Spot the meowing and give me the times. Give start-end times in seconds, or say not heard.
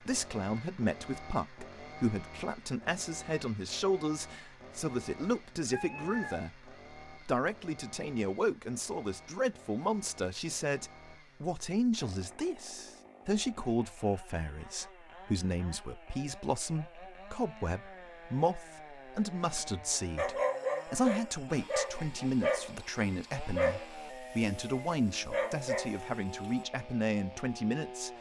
5.3-6.4.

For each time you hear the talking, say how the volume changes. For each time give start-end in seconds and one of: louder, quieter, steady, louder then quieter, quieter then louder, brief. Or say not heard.
0.0-28.1 steady.